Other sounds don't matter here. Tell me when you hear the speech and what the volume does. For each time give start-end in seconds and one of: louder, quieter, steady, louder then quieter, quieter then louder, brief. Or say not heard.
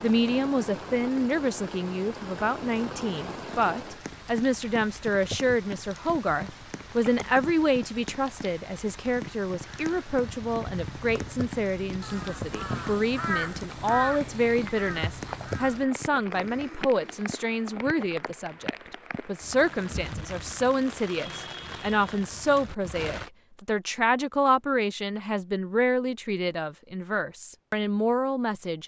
0.0-28.8 steady.